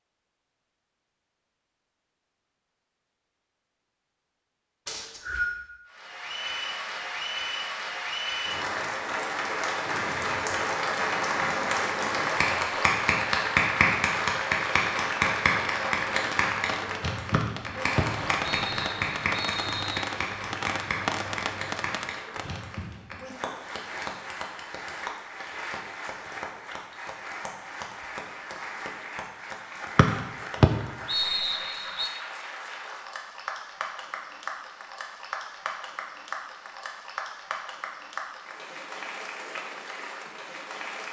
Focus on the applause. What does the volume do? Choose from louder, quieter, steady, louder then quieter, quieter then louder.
quieter.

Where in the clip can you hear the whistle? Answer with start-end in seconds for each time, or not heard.
4.8-5.5, 17.3-20.1, 29.9-32.1.